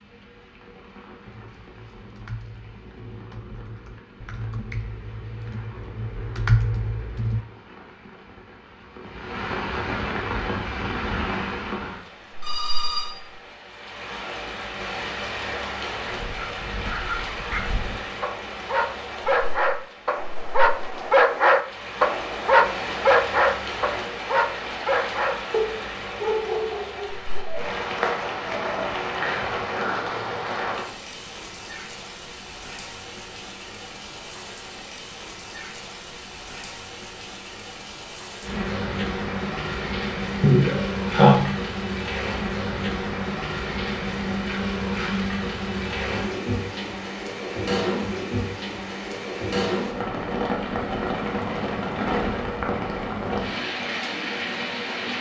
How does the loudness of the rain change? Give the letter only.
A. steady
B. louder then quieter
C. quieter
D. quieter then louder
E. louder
E.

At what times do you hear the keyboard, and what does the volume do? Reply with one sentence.
You can hear the keyboard from 1.2 to 7.5 s, getting louder.